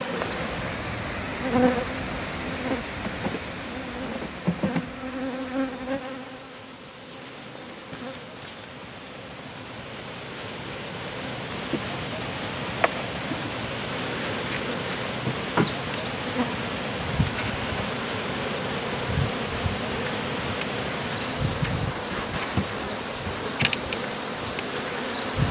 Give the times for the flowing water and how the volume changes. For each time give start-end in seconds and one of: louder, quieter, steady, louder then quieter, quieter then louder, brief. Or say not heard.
0.0-25.4 quieter then louder.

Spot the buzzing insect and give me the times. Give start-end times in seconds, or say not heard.
0.0-25.4.